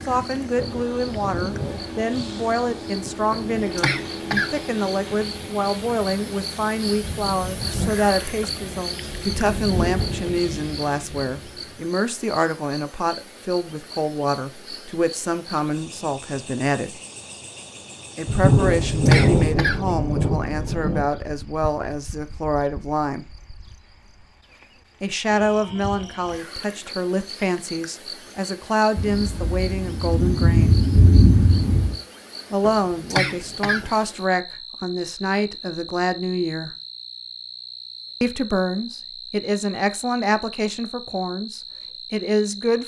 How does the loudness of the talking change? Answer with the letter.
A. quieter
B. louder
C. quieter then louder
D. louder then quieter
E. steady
E.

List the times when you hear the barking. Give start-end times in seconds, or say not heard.
not heard.